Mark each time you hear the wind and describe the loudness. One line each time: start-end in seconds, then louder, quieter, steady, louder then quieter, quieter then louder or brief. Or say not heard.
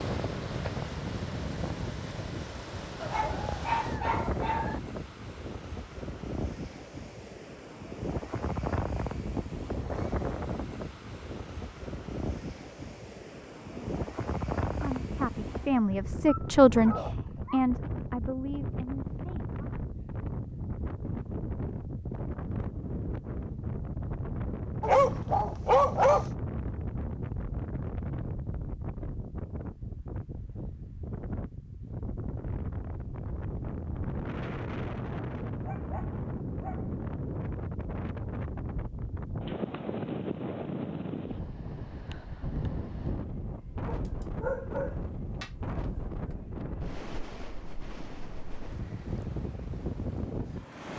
0.0-50.9 steady.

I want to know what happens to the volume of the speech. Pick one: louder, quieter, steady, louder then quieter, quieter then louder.
louder then quieter.